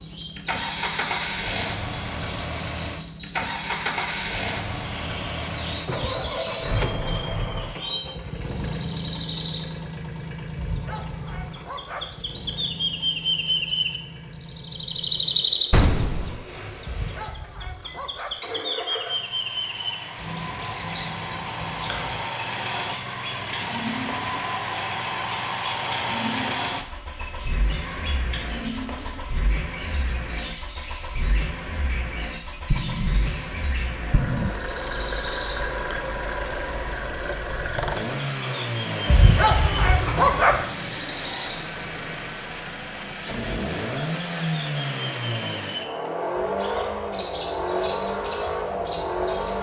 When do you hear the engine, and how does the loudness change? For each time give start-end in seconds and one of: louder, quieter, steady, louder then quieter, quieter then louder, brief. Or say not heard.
0.0-49.5 quieter then louder.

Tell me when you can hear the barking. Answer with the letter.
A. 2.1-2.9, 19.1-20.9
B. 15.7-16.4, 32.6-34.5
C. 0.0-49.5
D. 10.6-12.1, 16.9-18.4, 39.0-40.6
D.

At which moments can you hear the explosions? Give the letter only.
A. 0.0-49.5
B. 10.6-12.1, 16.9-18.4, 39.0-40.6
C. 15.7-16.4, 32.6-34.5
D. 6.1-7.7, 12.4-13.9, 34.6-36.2
C.